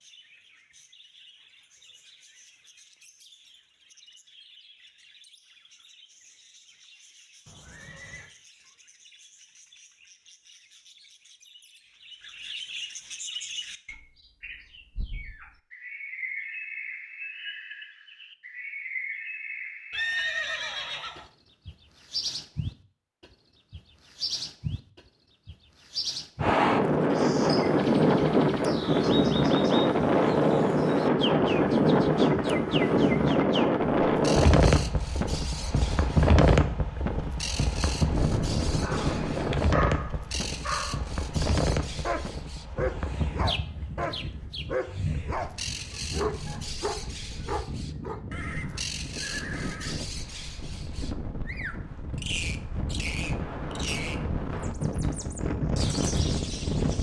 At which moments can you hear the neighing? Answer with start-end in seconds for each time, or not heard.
7.5-8.3, 19.9-21.2, 48.3-50.0.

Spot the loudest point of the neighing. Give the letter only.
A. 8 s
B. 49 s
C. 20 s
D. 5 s
C.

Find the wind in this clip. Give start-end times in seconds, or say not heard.
26.4-56.9.